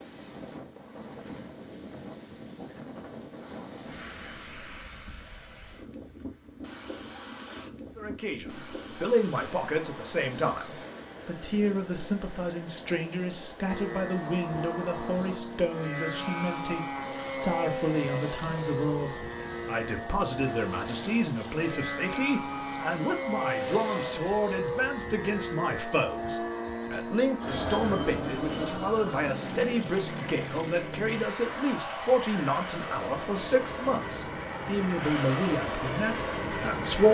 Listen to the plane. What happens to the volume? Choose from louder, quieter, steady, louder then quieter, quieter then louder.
steady.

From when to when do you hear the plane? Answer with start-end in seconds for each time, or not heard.
13.7-37.0.